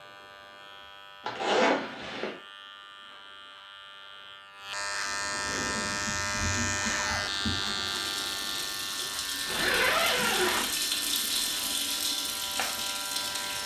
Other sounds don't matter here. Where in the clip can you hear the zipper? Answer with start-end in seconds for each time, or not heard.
1.2-2.3, 6.6-7.3, 9.4-10.8.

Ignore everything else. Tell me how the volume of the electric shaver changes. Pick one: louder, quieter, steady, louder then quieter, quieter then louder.
louder then quieter.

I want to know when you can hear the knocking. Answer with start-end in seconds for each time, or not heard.
not heard.